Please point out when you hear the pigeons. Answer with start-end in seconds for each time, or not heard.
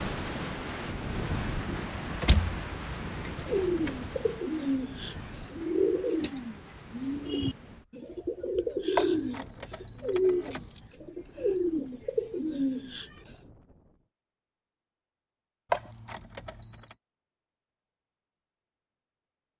3.5-13.3.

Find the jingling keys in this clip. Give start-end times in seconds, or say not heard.
1.6-4.3, 8.9-10.8, 15.7-16.9.